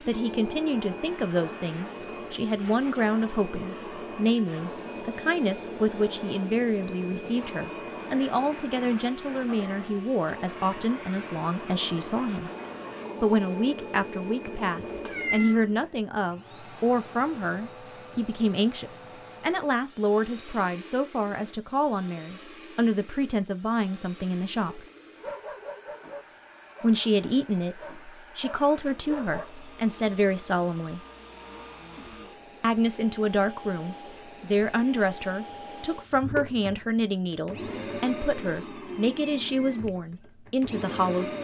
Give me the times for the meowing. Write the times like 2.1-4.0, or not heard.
14.8-15.6.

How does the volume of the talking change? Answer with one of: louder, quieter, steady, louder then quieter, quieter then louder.
steady.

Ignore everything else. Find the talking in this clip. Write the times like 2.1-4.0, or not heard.
0.1-12.5, 13.2-24.9, 26.8-31.0, 32.6-41.3.